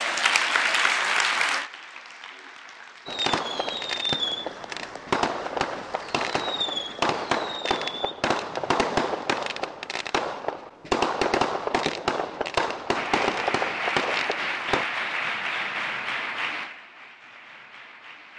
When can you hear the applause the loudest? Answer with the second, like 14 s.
1 s.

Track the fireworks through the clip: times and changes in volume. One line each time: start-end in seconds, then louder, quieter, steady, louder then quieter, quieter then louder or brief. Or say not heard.
3.0-14.8 steady.